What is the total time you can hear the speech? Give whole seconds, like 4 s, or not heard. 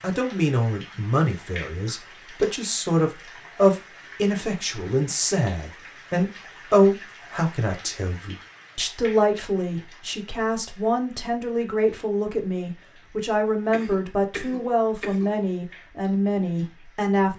17 s.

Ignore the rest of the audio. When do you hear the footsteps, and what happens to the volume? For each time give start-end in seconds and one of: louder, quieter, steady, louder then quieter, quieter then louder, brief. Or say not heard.
not heard.